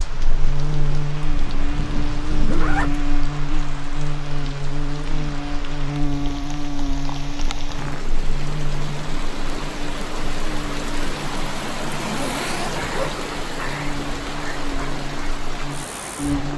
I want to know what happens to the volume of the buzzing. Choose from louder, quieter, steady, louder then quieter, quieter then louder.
quieter.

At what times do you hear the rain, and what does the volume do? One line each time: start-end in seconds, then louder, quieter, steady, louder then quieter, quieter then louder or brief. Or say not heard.
0.0-16.5 louder.